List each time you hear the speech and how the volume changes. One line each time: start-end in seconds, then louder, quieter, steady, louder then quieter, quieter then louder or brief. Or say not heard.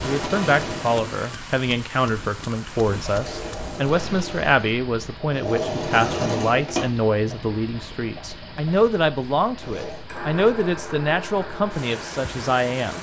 0.0-12.9 steady.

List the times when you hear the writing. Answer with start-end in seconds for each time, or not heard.
not heard.